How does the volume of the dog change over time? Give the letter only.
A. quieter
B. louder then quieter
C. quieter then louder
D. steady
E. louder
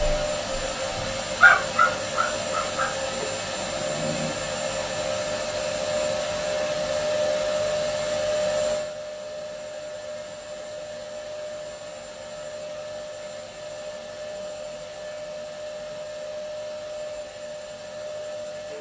B.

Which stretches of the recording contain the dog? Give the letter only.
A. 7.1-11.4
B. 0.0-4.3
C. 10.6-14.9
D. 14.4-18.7
B.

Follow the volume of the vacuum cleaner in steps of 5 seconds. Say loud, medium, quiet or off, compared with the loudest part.
loud, loud, medium, medium.